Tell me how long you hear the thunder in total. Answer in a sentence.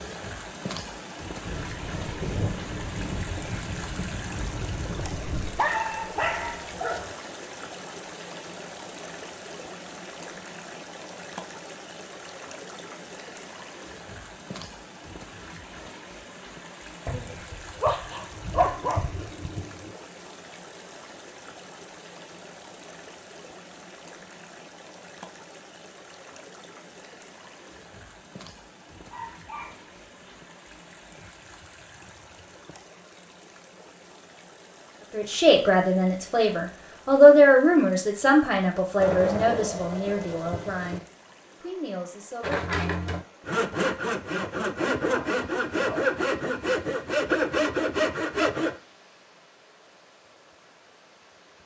The thunder can be heard for 8 seconds in total.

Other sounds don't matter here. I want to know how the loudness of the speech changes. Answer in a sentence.
The volume of the speech goes up, then down.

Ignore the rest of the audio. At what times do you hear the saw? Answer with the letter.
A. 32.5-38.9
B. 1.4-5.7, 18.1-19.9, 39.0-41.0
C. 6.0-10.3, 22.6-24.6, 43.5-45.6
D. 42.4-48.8
D.